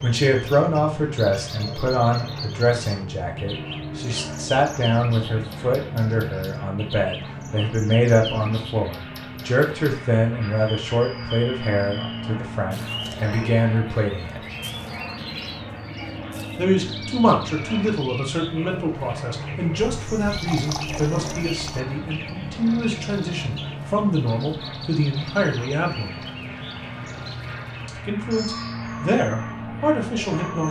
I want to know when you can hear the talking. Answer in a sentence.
You can hear the talking from 0.0 to 14.4 s, from 16.6 to 26.2 s and from 27.9 to 30.6 s.